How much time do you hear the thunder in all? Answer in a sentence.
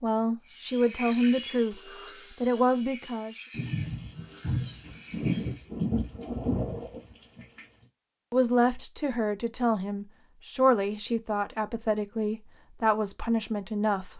You can hear the thunder for 4 seconds altogether.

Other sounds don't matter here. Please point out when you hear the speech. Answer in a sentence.
The speech can be heard from 0.0 to 3.4 s and from 8.3 to 14.1 s.